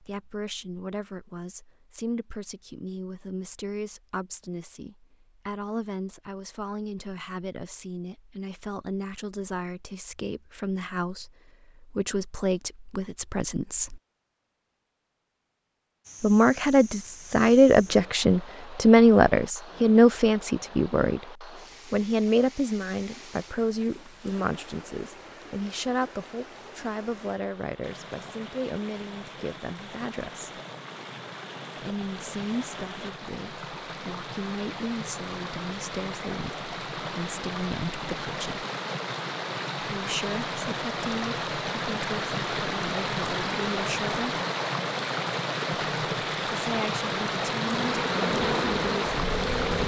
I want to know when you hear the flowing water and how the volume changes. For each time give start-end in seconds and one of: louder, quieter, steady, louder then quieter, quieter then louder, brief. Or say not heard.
16.0-49.8 louder.